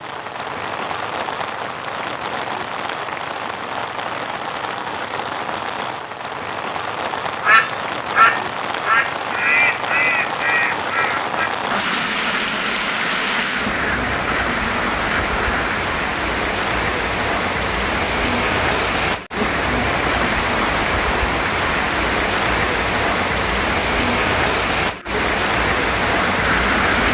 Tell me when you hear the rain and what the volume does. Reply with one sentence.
You can hear the rain from 0.0 to 27.0 s, getting louder.